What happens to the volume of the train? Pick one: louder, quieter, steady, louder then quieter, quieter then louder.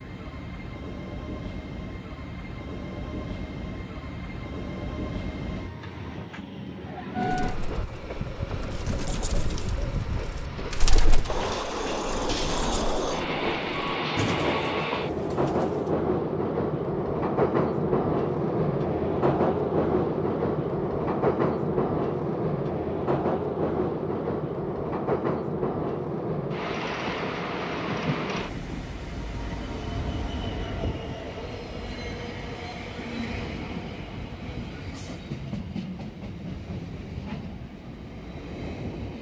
louder then quieter.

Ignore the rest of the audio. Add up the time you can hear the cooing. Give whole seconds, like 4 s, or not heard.
9 s.